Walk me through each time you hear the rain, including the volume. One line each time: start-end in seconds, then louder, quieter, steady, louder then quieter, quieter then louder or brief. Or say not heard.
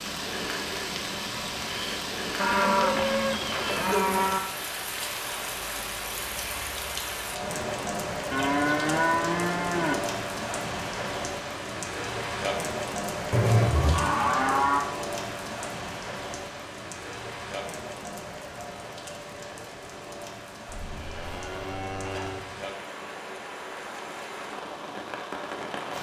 0.0-25.9 quieter.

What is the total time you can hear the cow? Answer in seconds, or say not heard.
7 s.